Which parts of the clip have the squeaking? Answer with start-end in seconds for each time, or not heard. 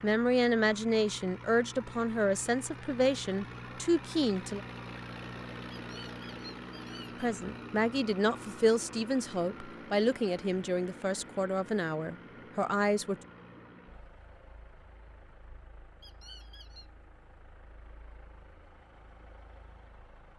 5.7-7.2, 16.0-16.9.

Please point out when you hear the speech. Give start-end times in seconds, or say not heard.
0.0-4.6, 7.2-13.2.